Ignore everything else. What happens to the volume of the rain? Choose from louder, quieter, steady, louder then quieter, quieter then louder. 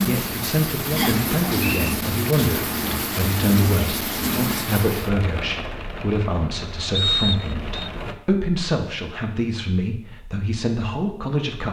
quieter.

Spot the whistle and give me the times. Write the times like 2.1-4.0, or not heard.
0.9-1.9, 6.9-7.9.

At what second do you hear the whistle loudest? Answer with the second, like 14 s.
7 s.